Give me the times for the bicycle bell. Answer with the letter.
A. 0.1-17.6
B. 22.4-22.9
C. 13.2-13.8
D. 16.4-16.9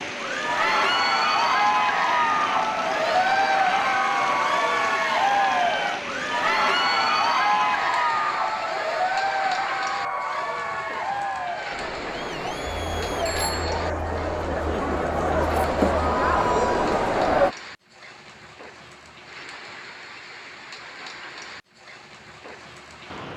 C.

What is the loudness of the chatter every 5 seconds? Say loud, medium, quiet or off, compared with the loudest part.
loud, loud, medium, loud, off.